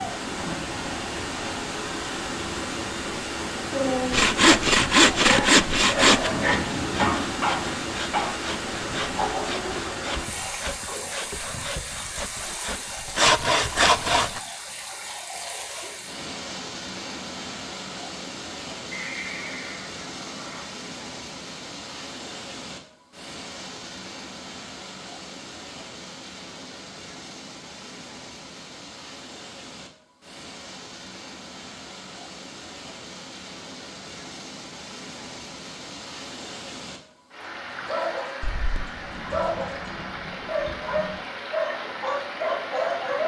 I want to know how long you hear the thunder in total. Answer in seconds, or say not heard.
4 s.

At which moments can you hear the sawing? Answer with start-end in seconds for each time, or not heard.
4.1-14.4.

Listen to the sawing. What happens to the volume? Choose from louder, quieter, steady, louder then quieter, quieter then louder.
quieter then louder.